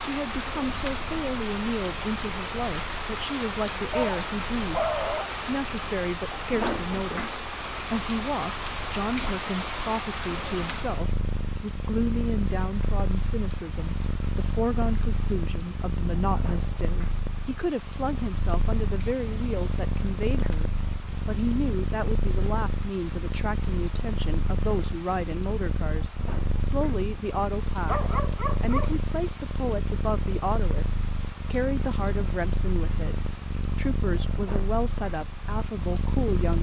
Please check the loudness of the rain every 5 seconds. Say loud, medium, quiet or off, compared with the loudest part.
loud, loud, medium, quiet, quiet, quiet, quiet, quiet.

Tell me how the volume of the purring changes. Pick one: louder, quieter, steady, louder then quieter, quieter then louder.
louder.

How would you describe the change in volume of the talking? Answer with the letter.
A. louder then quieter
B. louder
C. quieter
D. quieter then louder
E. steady
E.